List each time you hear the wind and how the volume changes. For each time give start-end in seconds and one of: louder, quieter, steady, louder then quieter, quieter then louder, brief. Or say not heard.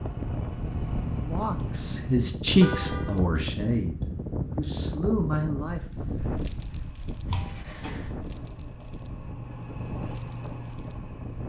0.0-11.4 quieter.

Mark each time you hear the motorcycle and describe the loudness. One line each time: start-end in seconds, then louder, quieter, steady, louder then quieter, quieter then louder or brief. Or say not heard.
0.0-2.1 brief
6.3-11.4 louder.